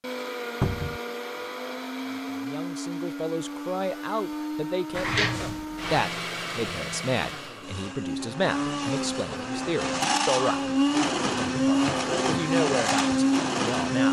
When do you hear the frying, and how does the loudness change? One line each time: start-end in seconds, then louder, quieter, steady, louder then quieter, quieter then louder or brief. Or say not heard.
not heard.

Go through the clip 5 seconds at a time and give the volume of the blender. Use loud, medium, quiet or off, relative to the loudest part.
medium, medium, loud.